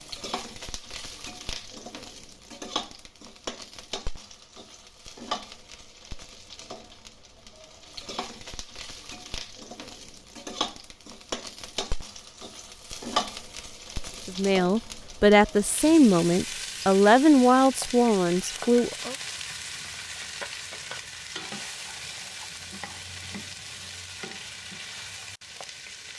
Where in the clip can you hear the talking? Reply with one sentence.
You can hear the talking from 14.2 to 19.1 s.